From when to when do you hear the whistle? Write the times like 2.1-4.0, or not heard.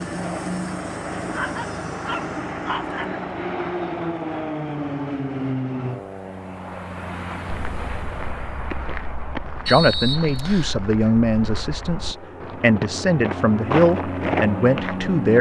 9.7-10.8.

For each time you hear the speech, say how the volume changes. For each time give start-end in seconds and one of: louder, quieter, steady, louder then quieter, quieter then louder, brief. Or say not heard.
9.7-15.3 steady.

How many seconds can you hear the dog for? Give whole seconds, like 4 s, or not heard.
2 s.